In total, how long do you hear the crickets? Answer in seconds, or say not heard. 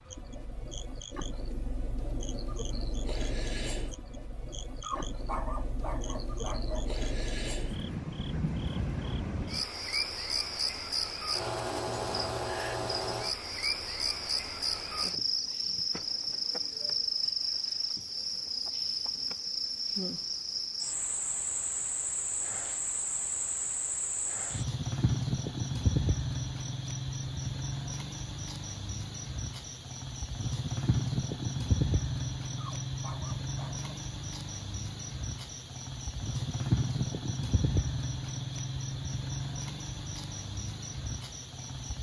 42 s.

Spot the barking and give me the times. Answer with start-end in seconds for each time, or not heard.
4.8-6.9, 32.5-33.9.